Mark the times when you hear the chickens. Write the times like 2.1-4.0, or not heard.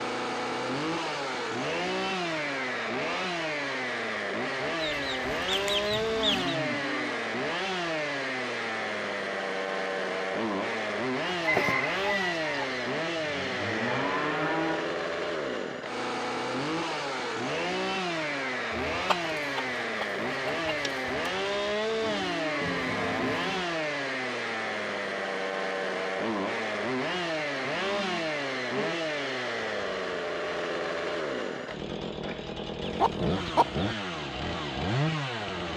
4.8-6.5, 11.2-12.7, 18.9-21.5, 32.8-33.9.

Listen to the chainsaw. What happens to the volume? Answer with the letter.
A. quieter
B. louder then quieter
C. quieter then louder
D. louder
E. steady
E.